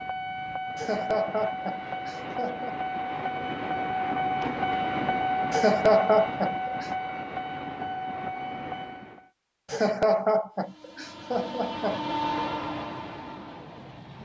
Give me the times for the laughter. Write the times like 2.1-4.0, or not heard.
0.8-2.7, 5.5-6.8, 9.7-12.0.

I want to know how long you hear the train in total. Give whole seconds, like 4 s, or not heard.
13 s.